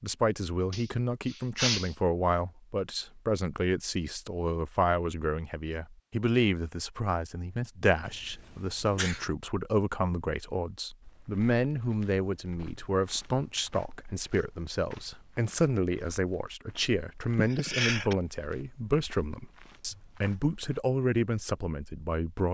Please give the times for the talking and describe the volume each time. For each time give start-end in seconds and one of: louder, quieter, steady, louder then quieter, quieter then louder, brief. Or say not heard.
0.0-22.4 steady.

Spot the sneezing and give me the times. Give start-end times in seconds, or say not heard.
0.7-1.9, 8.1-9.2, 17.4-18.1.